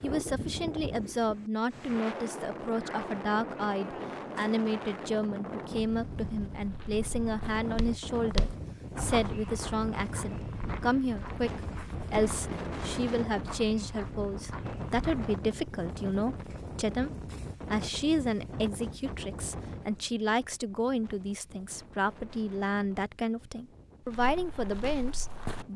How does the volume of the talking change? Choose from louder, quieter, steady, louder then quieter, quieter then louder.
steady.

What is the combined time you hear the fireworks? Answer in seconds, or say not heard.
not heard.